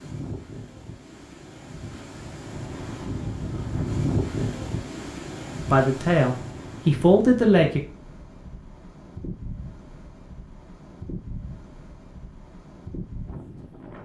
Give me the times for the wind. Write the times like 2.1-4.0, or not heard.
0.0-14.0.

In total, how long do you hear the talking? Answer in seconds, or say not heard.
2 s.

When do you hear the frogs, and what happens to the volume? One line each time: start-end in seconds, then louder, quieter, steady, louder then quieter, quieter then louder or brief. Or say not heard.
not heard.